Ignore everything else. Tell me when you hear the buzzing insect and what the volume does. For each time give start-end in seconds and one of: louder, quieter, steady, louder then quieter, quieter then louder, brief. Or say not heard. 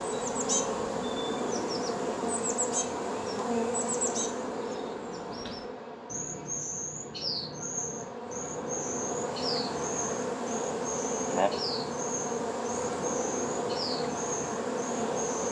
0.0-15.4 quieter then louder.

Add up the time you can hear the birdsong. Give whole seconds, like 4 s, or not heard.
15 s.